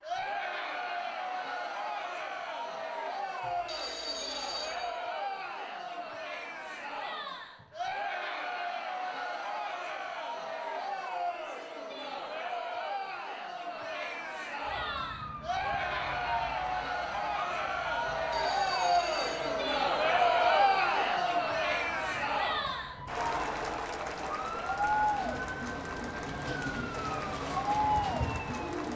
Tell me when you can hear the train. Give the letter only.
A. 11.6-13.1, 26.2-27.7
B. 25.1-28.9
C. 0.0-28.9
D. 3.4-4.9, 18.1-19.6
B.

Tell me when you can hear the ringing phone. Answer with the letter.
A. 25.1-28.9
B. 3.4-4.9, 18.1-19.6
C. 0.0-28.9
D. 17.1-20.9
B.